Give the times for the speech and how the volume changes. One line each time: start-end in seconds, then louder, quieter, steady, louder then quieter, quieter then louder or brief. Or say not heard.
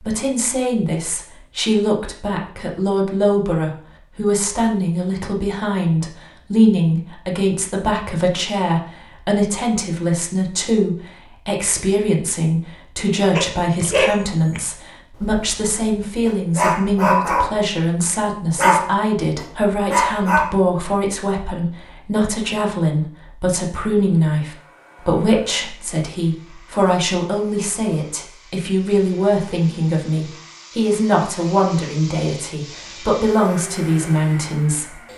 0.0-35.0 steady.